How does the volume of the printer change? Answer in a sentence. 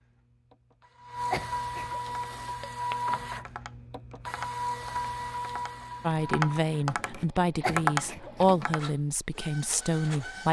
The volume of the printer goes down.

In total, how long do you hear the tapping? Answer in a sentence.
You can hear the tapping for 7 seconds altogether.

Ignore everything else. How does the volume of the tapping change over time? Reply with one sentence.
The volume of the tapping goes down, then up.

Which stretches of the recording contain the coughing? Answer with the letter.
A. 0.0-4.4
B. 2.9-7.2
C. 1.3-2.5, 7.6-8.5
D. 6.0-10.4
C.